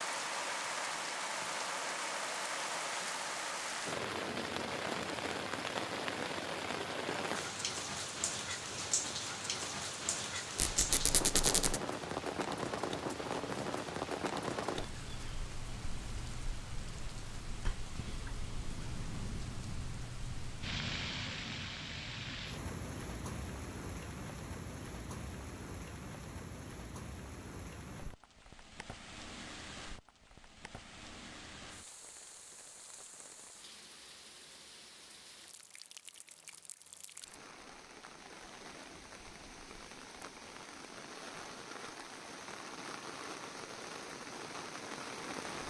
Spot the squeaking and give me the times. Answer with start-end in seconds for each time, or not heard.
10.6-11.8.